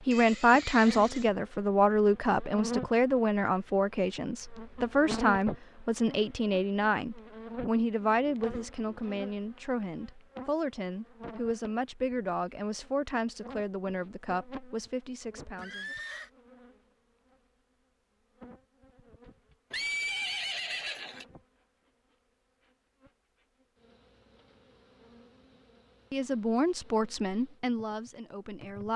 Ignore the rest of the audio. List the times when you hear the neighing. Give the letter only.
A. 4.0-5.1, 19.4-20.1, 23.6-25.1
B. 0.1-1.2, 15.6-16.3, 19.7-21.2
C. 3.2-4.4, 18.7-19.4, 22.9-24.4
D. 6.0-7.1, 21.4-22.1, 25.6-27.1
B.